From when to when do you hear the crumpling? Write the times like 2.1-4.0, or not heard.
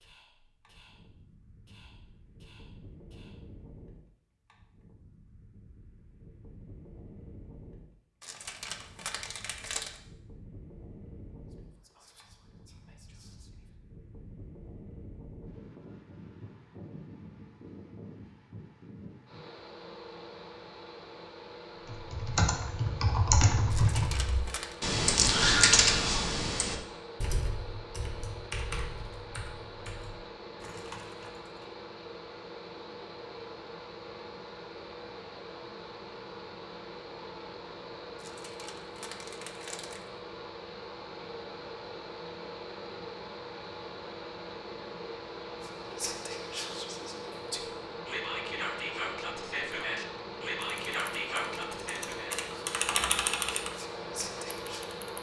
8.2-10.0, 23.7-24.8, 38.1-40.1.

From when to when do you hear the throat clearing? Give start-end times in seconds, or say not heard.
not heard.